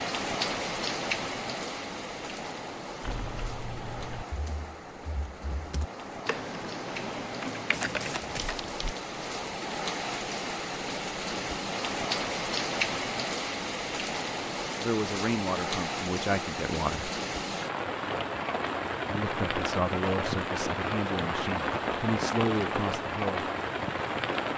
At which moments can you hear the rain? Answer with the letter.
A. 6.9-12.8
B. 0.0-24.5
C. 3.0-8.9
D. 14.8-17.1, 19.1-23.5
B.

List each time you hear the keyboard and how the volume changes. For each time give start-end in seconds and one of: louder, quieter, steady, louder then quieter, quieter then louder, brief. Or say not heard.
3.0-8.9 quieter then louder.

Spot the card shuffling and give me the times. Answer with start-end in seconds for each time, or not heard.
7.7-8.8.